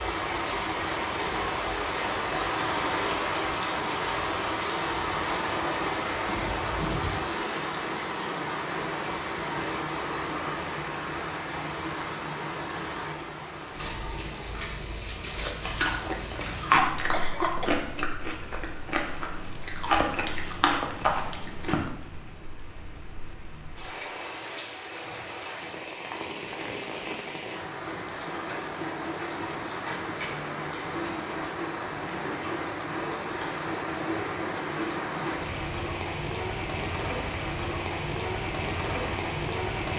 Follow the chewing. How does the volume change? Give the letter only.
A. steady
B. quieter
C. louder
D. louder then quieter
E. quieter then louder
E.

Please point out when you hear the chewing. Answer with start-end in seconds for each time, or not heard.
15.3-21.9.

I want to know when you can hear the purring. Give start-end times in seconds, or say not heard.
not heard.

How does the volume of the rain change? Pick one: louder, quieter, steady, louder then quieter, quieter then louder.
quieter then louder.